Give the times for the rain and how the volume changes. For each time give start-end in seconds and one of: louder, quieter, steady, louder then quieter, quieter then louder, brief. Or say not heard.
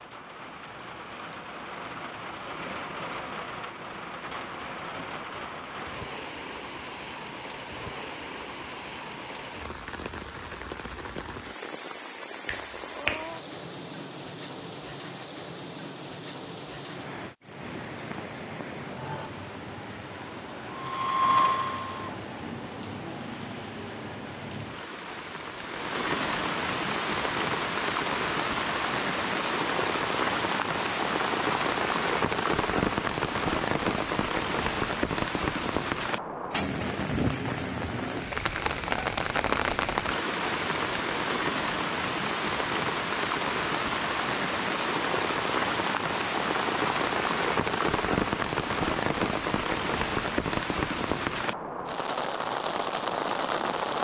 0.0-53.9 louder.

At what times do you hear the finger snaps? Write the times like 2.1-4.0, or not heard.
12.4-13.3.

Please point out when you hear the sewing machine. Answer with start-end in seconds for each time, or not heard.
20.6-22.2.